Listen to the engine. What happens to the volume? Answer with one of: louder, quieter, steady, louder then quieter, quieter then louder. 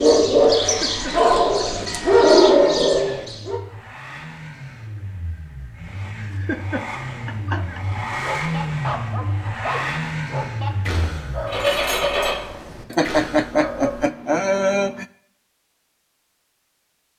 louder.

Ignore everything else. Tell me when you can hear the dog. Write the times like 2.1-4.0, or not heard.
0.0-3.6, 8.2-14.1.